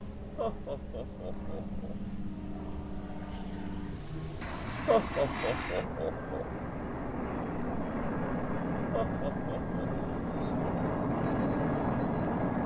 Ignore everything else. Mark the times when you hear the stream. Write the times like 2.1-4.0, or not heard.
not heard.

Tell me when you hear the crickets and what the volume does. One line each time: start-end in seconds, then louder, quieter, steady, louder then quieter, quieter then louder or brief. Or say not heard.
0.0-12.6 steady.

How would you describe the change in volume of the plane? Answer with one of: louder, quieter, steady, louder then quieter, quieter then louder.
louder.